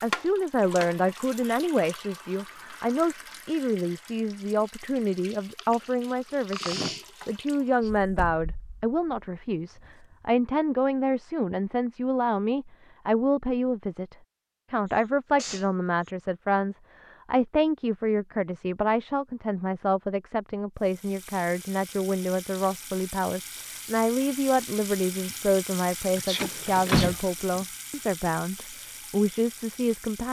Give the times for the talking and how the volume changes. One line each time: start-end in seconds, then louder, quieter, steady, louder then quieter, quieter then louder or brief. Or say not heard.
0.0-30.2 steady.